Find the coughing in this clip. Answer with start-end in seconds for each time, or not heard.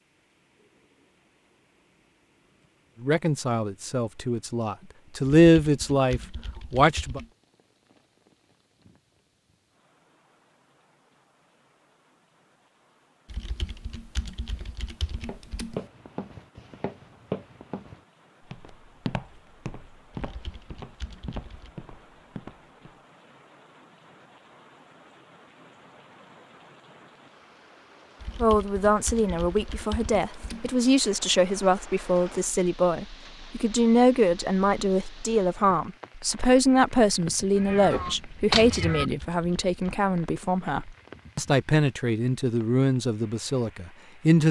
not heard.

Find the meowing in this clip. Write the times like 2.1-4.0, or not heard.
37.5-39.1.